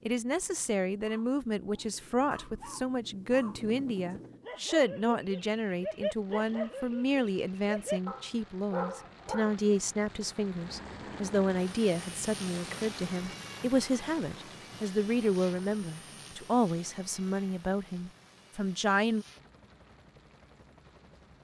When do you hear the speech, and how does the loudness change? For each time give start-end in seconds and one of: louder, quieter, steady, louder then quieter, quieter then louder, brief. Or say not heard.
0.1-19.2 steady.